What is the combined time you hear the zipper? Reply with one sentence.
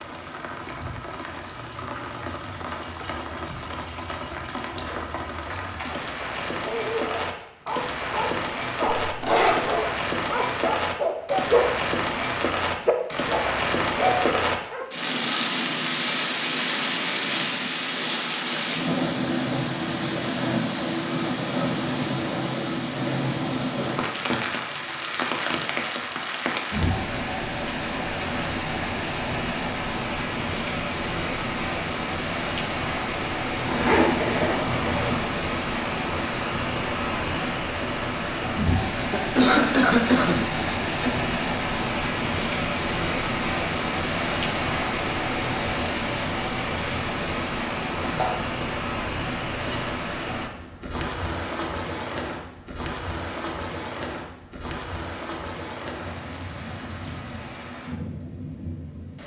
The zipper can be heard for 4 seconds in total.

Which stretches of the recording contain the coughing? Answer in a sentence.
The coughing can be heard from 39.1 to 41.1 s.